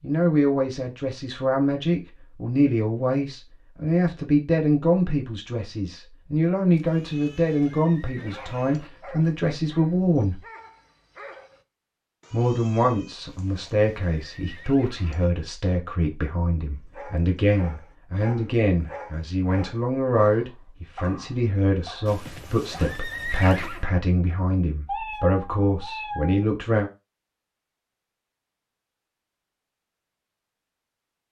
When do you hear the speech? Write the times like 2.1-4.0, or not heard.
0.0-10.4, 12.3-26.9.